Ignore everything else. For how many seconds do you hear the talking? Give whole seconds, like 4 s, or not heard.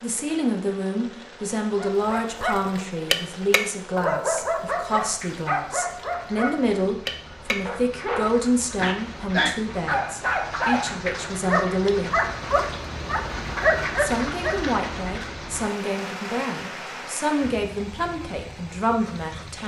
18 s.